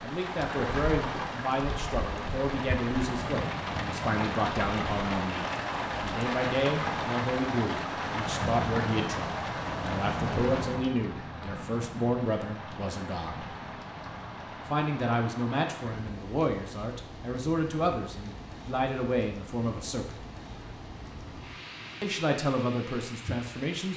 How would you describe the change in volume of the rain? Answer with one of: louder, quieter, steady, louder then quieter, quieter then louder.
quieter.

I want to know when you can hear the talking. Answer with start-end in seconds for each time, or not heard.
0.0-13.5, 14.7-20.2, 22.0-23.9.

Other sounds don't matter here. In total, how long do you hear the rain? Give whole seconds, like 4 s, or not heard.
24 s.